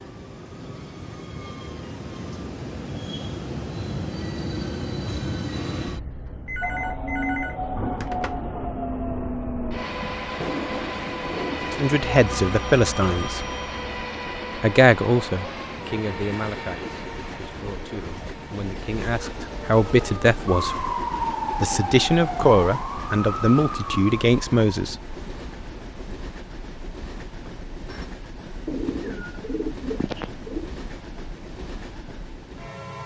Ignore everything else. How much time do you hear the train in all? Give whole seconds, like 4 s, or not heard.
33 s.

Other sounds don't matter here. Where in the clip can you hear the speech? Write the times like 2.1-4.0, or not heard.
11.8-13.4, 14.6-20.9, 21.6-25.1.